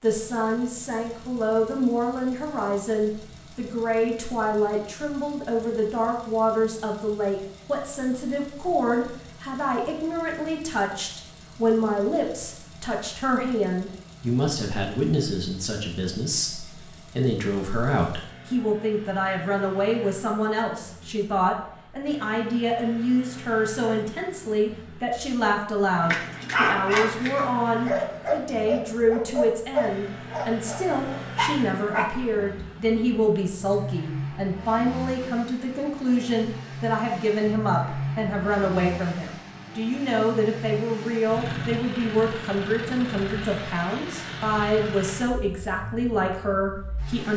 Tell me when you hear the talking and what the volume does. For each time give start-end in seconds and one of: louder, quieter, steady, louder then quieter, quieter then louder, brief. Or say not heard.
0.0-47.3 steady.